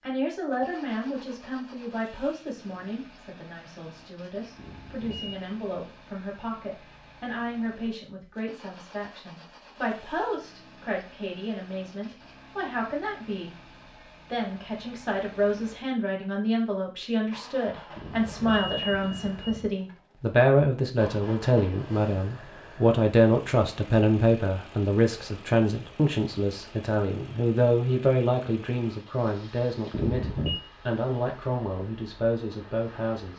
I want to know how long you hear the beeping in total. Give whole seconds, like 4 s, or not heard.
3 s.